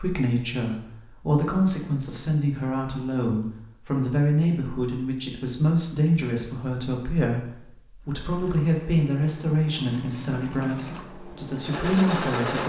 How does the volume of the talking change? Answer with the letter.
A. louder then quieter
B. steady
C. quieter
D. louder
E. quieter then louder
B.